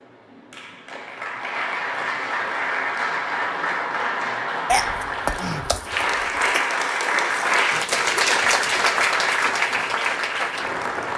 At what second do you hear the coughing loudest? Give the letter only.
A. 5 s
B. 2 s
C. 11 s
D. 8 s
A.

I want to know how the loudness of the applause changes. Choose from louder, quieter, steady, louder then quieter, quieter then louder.
louder.